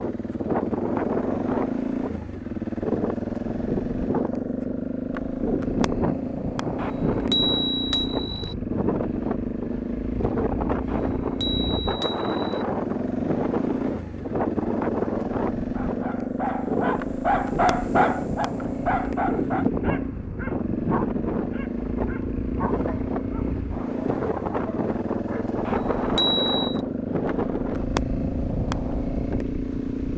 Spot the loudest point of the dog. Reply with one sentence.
The loudest moment of the dog is at 18 seconds.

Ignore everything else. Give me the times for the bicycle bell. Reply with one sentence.
You can hear the bicycle bell from 6.8 to 8.6 s, from 10.8 to 12.7 s and from 25.6 to 26.8 s.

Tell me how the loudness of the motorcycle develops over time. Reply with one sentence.
The volume of the motorcycle stays about the same.